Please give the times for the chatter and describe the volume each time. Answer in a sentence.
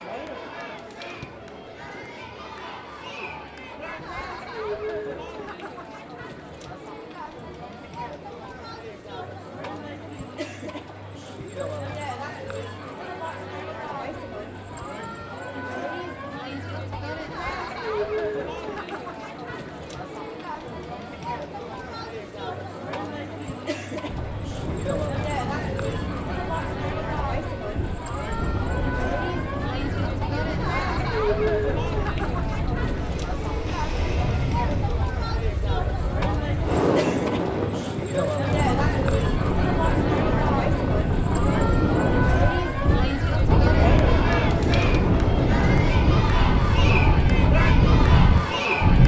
You can hear the chatter from 0.0 to 49.0 s, getting louder.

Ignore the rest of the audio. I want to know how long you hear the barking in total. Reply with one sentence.
You can't hear the barking here.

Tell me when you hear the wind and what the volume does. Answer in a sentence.
The wind can be heard from 24.1 to 49.0 s, getting louder.